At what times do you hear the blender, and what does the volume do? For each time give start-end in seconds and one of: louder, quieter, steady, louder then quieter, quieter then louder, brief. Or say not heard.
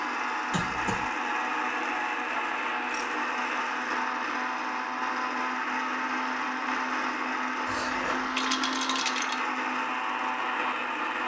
0.0-11.2 steady.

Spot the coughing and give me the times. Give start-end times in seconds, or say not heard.
0.5-1.1, 7.7-8.4.